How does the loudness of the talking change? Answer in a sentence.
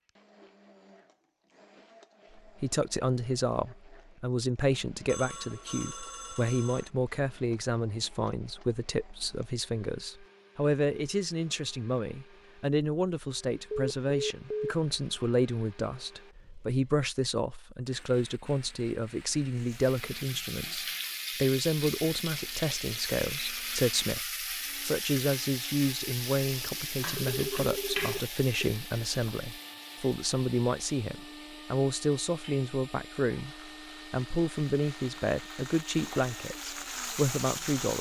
The volume of the talking stays about the same.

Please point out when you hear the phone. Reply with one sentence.
The phone can be heard from 5.0 to 6.9 s, from 13.7 to 14.8 s and from 27.1 to 28.7 s.